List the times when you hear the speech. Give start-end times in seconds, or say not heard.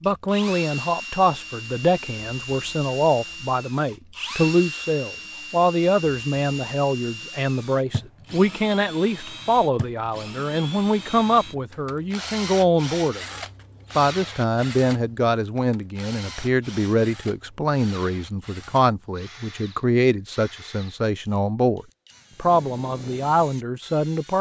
0.0-24.3.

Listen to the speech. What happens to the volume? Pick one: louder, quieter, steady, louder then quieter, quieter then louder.
steady.